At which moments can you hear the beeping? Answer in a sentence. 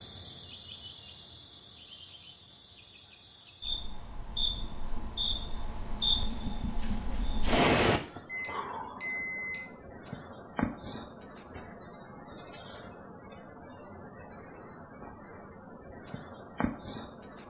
The beeping can be heard from 8.2 to 9.7 s.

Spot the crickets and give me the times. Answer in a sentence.
The crickets can be heard from 0.0 to 17.4 s.